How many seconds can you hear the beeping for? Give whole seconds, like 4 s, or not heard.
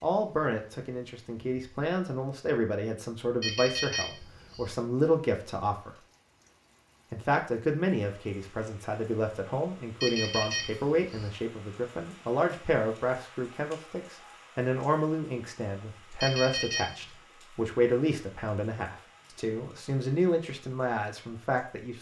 3 s.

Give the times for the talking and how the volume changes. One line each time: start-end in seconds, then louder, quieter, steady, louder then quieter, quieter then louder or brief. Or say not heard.
0.0-5.9 louder
7.1-21.9 steady.